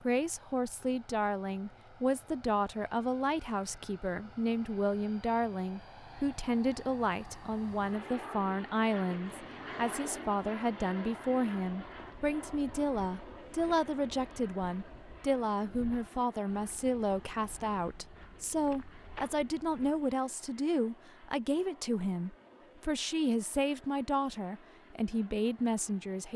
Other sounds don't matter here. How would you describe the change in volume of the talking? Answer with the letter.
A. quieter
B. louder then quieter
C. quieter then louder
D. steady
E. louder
D.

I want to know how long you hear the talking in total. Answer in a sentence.
You can hear the talking for 26 seconds altogether.